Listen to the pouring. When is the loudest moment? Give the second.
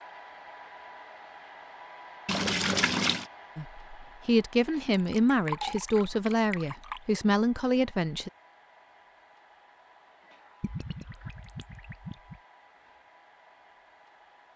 3 s.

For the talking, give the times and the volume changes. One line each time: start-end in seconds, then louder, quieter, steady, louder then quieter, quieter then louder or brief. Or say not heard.
3.5-8.3 steady.